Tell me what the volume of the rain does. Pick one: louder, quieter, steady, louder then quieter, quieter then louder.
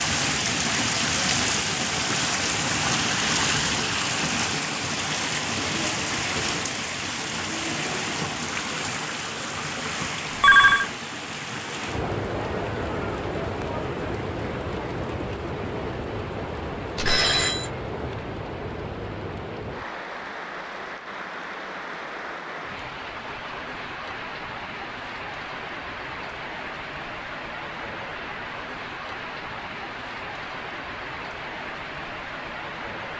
quieter.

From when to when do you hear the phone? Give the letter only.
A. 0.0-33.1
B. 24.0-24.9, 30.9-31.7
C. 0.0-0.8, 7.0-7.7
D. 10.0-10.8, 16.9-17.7
D.